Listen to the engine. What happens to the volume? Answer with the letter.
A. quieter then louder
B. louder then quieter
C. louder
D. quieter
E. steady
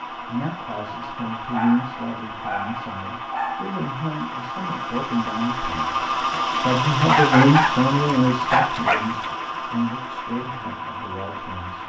B.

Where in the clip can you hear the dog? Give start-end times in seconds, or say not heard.
1.5-3.8, 7.0-9.3.